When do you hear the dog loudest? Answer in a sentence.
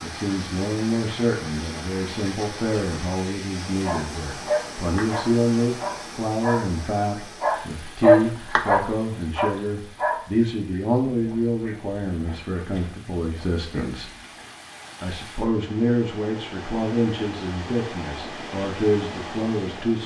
The loudest moment of the dog is at 8 seconds.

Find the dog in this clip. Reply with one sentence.
The dog can be heard from 3.8 to 14.4 s.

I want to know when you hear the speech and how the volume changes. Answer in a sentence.
You can hear the speech from 0.0 to 14.1 s, at a steady volume; and from 15.0 to 20.0 s, getting quieter then louder.